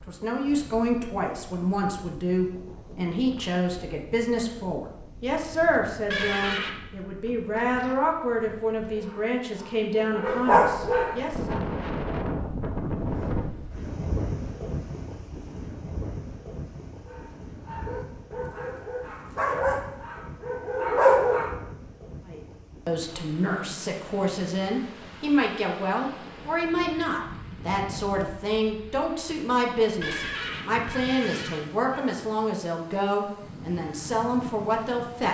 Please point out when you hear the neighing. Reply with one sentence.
You can hear the neighing from 6.1 to 6.8 s and from 30.0 to 32.0 s.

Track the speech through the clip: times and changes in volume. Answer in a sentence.
You can hear the speech from 0.1 to 11.6 s, at a steady volume; and from 22.2 to 35.2 s, at a steady volume.